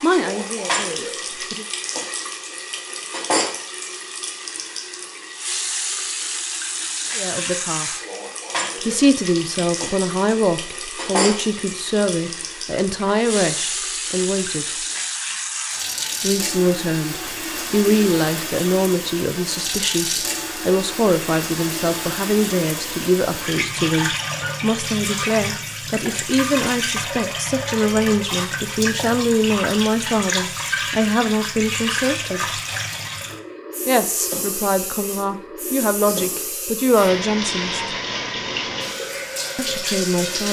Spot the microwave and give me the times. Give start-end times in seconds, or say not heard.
not heard.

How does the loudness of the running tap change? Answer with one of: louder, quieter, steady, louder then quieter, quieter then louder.
steady.